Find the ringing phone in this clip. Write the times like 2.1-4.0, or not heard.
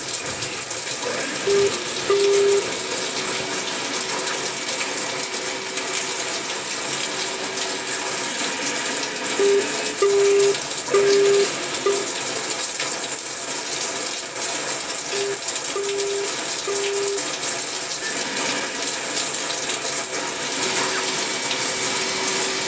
1.4-2.6, 9.3-12.1, 15.1-17.2.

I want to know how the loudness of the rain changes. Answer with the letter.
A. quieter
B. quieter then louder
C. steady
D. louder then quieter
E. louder
C.